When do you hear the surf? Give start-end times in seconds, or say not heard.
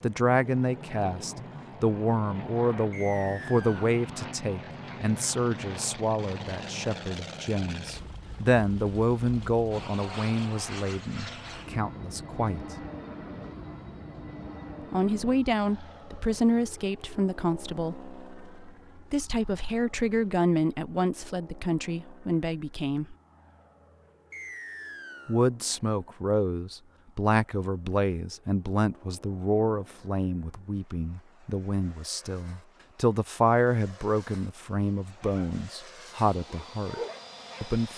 not heard.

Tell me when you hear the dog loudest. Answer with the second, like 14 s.
37 s.